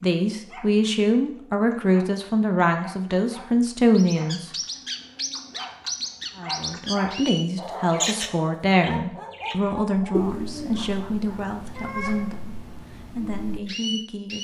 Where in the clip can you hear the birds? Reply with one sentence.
You can hear the birds from 4.0 to 14.4 s.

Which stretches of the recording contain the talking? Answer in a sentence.
You can hear the talking from 0.0 to 4.5 s and from 6.3 to 14.4 s.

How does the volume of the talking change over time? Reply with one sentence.
The volume of the talking goes down.